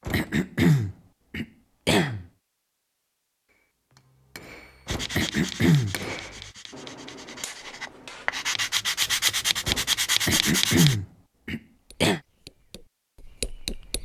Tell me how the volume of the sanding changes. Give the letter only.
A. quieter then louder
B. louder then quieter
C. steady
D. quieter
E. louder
A.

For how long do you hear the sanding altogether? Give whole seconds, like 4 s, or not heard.
6 s.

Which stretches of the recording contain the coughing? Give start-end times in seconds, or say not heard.
0.1-2.2, 5.2-6.0, 10.2-12.2.